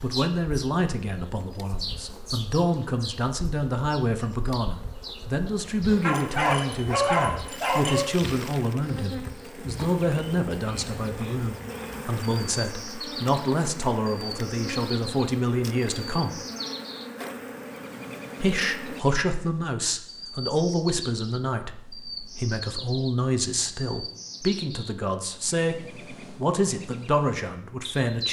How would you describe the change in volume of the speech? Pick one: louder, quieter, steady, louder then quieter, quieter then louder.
steady.